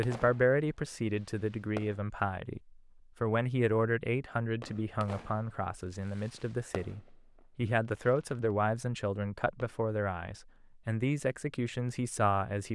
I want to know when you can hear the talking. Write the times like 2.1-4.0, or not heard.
0.0-12.6.